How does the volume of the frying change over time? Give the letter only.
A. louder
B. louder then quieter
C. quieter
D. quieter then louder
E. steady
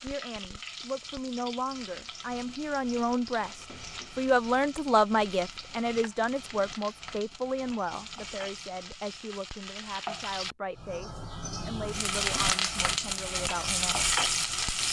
A.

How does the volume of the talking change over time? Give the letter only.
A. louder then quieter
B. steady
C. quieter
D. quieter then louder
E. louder
A.